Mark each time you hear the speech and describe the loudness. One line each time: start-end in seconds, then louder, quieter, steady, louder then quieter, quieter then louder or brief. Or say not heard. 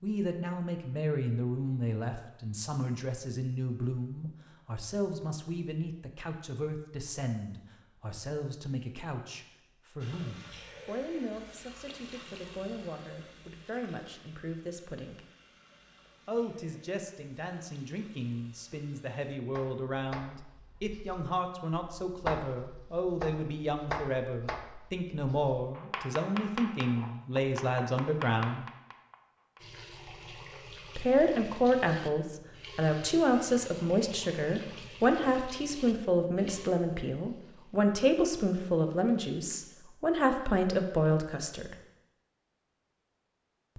0.0-15.2 quieter
16.2-28.6 louder
30.9-41.8 steady.